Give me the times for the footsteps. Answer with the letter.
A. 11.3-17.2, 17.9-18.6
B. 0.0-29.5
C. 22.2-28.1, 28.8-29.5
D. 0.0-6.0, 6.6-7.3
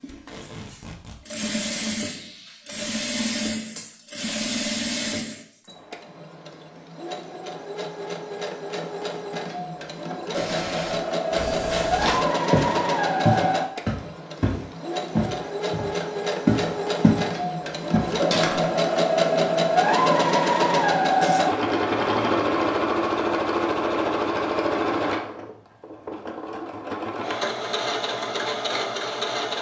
A.